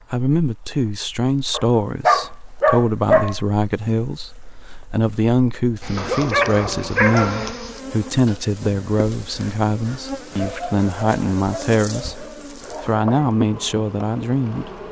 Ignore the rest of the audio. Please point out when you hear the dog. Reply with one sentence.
The dog can be heard from 1.5 to 3.4 s, from 6.0 to 7.5 s and from 10.3 to 13.1 s.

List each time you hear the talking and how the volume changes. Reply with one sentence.
The talking can be heard from 0.1 to 14.8 s, at a steady volume.